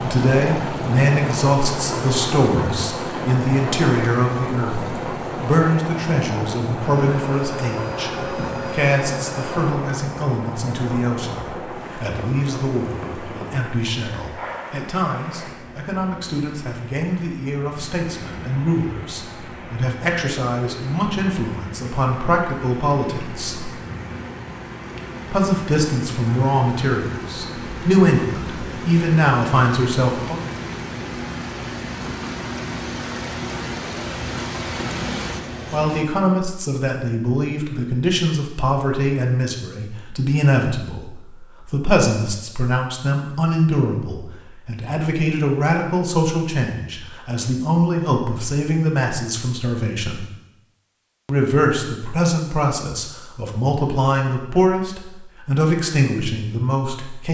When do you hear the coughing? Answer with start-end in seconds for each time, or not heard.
not heard.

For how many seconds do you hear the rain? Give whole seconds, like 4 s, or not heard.
36 s.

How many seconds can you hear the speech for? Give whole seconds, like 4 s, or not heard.
49 s.